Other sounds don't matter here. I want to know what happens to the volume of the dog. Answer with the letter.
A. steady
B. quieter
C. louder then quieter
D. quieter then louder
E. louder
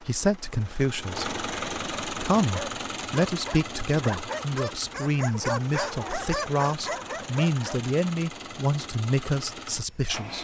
E.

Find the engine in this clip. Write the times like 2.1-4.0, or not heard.
0.0-10.3.